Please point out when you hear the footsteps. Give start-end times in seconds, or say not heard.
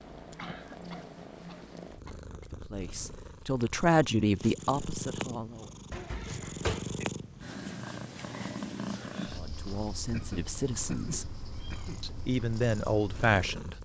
not heard.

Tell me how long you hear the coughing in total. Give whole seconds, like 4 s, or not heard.
5 s.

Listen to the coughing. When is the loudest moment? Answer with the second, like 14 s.
7 s.